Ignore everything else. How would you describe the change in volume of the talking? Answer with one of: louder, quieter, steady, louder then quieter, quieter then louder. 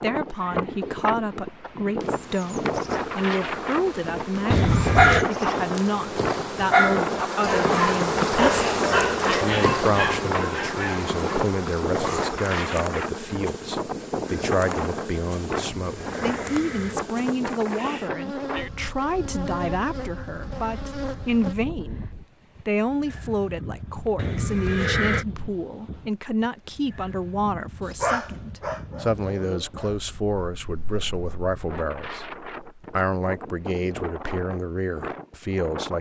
steady.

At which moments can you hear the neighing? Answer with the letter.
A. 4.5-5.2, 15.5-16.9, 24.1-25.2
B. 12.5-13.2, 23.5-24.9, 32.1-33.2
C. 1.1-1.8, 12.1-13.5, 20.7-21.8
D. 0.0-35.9
A.